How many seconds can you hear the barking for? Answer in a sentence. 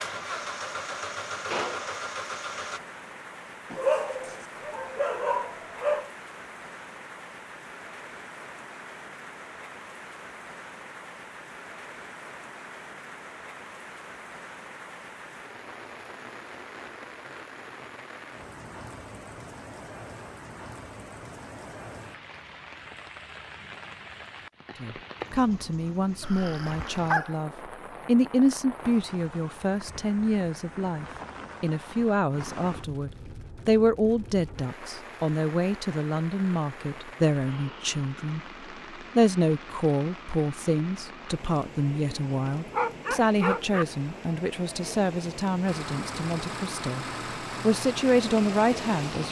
You can hear the barking for 5 seconds altogether.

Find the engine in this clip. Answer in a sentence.
The engine can be heard from 0.0 to 2.8 s and from 45.6 to 49.2 s.